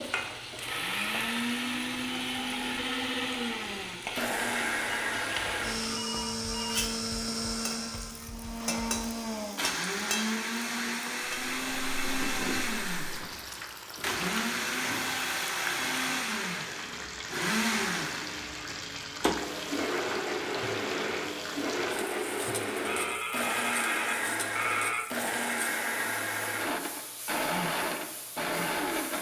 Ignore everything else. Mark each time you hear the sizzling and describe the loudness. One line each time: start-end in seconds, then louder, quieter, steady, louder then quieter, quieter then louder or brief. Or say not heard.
0.0-29.1 quieter.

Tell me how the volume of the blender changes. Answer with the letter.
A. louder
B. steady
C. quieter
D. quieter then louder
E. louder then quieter
B.